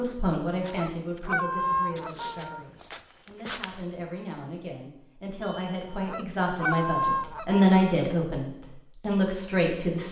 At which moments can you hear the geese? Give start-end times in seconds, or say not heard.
0.6-2.6, 5.8-8.0.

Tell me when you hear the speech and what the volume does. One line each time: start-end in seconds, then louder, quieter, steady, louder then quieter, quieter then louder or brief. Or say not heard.
0.0-10.0 quieter then louder.